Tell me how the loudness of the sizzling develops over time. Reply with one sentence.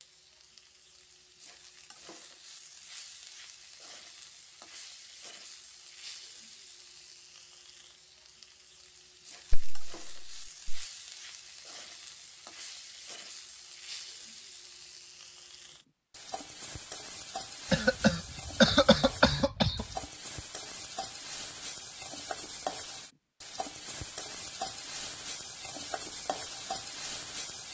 The volume of the sizzling goes up.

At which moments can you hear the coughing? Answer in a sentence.
The coughing can be heard from 9.5 to 10.8 s and from 17.7 to 19.9 s.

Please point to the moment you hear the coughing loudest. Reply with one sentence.
The volume of the coughing peaks at 19 seconds.